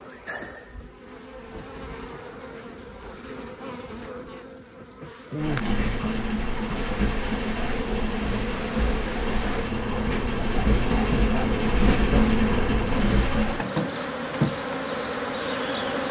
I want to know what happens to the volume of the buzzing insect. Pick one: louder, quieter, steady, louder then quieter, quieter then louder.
louder.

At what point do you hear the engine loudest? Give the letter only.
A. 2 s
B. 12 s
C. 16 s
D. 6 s
B.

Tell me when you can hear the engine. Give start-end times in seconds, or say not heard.
5.4-13.7.